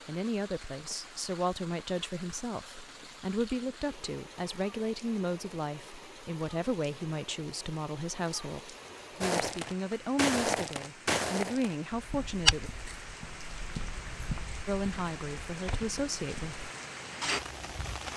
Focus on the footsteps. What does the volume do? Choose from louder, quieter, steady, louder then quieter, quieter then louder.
quieter.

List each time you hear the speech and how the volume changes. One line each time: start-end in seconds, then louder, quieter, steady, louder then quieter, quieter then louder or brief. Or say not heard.
0.1-12.7 steady
14.7-16.7 brief.